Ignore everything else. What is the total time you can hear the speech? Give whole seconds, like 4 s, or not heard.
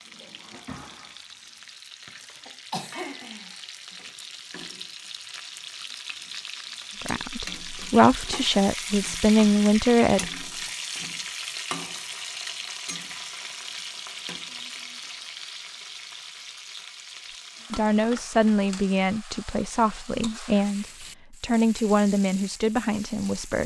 9 s.